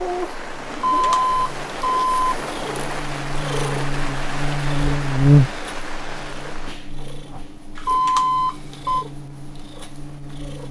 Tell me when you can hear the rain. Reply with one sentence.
You can hear the rain from 0.0 to 6.8 s.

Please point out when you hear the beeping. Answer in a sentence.
You can hear the beeping from 0.7 to 2.4 s and from 7.8 to 9.1 s.